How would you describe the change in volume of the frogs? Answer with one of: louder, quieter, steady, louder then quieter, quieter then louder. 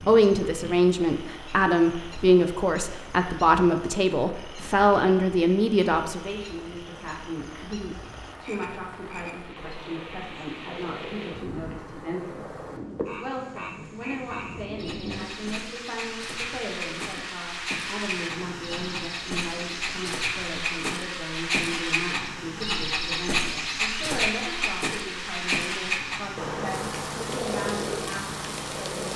louder.